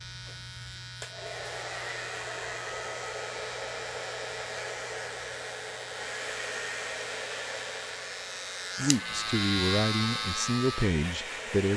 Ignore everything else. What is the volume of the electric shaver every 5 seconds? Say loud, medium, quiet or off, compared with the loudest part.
medium, loud, loud.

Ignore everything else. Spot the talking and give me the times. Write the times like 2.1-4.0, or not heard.
8.8-11.7.